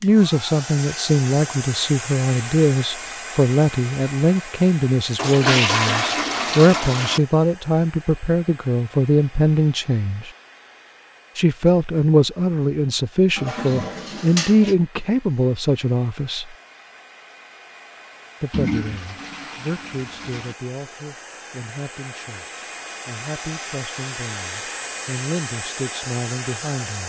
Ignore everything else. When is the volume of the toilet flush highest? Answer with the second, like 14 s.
6 s.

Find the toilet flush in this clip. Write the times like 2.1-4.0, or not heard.
5.2-7.2, 13.3-14.8, 18.5-20.6.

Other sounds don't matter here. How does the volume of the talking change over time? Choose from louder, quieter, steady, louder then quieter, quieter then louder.
quieter.